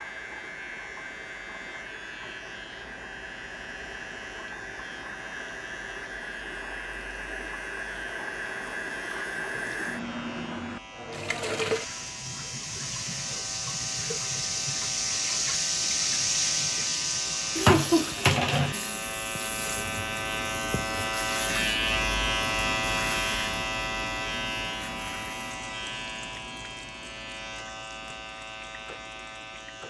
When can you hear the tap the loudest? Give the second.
18 s.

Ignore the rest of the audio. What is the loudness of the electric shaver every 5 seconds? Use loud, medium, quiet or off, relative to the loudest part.
quiet, quiet, quiet, medium, loud, medium.